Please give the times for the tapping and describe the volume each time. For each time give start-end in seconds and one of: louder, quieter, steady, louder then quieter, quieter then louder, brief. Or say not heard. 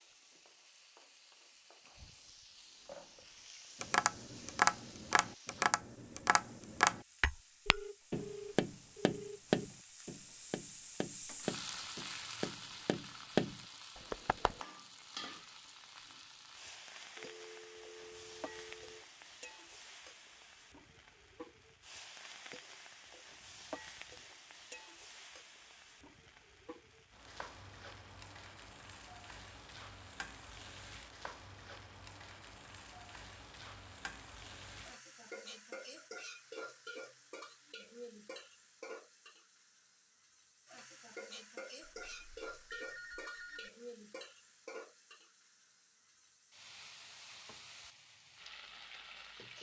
3.8-14.6 quieter then louder.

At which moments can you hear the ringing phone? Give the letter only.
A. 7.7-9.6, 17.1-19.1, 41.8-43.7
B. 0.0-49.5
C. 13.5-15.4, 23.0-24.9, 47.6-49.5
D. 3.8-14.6
A.